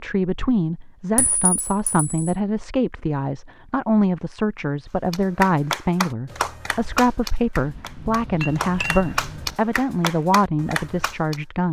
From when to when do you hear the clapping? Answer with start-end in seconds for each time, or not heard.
5.1-11.4.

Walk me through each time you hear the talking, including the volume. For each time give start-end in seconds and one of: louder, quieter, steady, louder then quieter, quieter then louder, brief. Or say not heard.
0.0-11.6 steady.